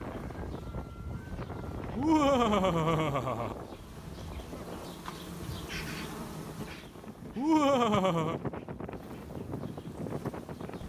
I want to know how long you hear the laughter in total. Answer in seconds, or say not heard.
3 s.